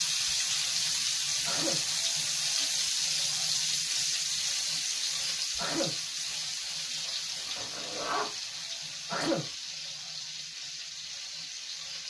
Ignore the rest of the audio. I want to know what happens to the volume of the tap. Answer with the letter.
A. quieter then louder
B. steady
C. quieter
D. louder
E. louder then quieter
C.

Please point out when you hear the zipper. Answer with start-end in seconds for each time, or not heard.
7.5-8.3.